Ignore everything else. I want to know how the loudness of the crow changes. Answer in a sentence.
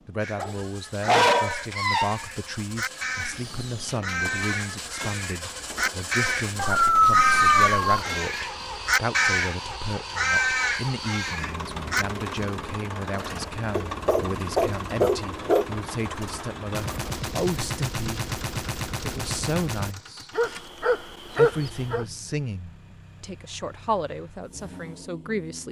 The loudness of the crow goes up.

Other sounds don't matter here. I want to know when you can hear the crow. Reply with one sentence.
The crow can be heard from 0.1 to 12.1 s.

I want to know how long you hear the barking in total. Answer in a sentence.
You can hear the barking for 7 seconds altogether.